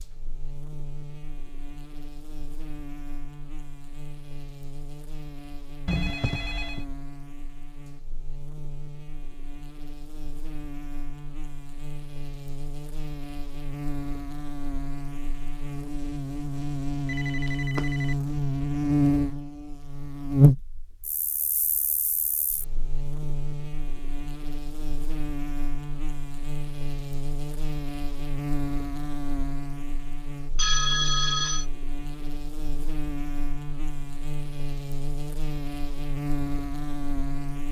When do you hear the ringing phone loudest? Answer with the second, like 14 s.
31 s.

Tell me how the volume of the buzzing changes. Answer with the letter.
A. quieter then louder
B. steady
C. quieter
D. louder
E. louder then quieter
E.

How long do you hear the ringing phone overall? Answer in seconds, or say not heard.
3 s.